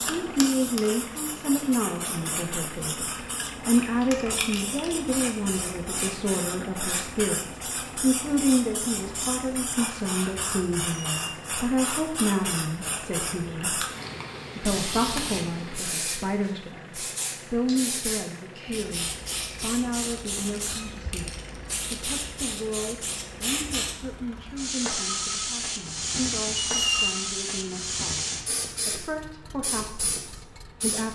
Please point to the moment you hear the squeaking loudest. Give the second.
27 s.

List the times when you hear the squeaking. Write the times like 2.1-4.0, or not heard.
10.8-11.3, 26.6-27.1.